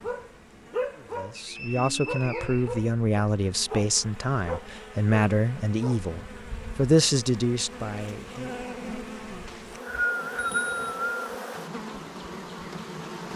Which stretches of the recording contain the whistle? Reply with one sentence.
The whistle can be heard from 1.4 to 3.3 s and from 9.4 to 11.3 s.